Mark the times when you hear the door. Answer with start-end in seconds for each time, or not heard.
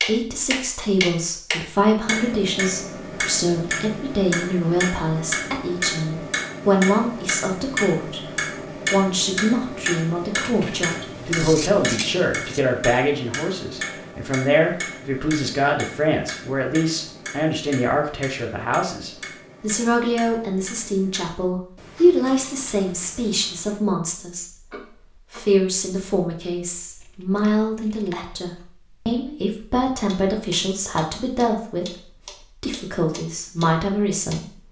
not heard.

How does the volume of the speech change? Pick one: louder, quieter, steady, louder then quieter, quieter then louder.
steady.